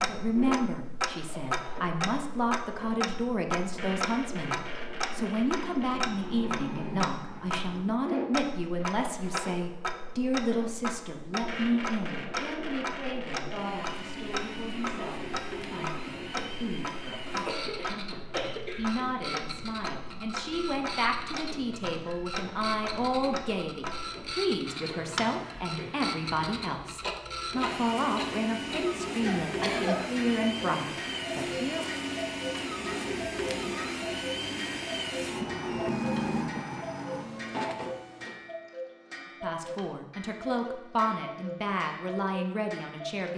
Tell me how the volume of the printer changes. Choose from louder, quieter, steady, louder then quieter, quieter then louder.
louder.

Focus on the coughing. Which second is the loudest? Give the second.
30 s.